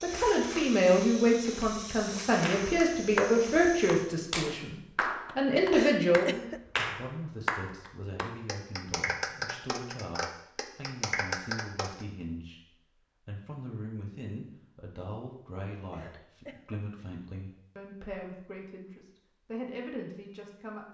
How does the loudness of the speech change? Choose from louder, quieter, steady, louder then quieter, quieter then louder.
quieter.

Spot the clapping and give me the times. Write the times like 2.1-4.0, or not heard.
2.5-12.1.